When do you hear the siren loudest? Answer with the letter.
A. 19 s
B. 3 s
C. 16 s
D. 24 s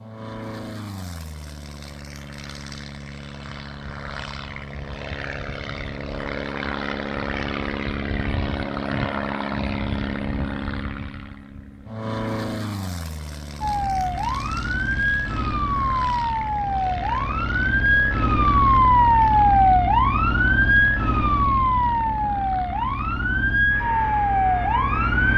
A.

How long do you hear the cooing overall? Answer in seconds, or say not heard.
not heard.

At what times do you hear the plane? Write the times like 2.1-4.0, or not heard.
0.0-25.3.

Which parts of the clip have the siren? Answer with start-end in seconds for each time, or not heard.
13.6-25.3.